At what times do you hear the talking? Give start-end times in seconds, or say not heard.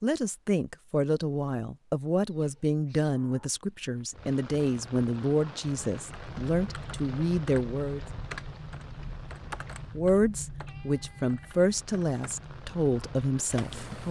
0.0-8.0, 9.9-14.0.